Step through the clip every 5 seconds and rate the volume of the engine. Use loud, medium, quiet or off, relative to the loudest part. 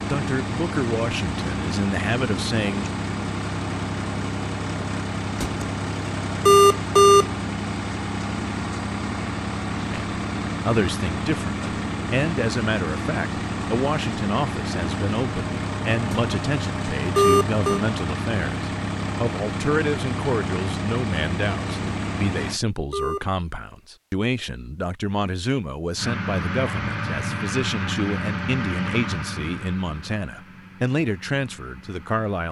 loud, loud, loud, loud, loud, loud, quiet.